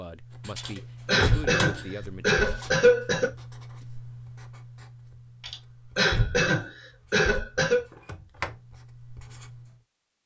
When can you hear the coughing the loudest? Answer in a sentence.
The loudest moment of the coughing is at 3 seconds.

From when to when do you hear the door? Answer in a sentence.
The door can be heard from 0.8 to 1.9 s and from 7.9 to 8.6 s.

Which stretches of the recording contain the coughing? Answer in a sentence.
The coughing can be heard from 0.6 to 3.3 s and from 5.4 to 7.8 s.